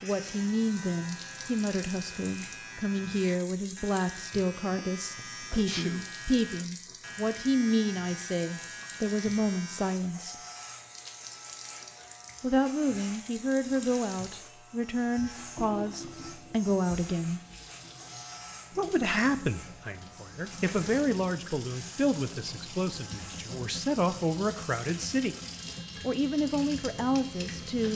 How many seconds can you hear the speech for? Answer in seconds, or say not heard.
24 s.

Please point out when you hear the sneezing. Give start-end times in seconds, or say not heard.
5.5-6.1.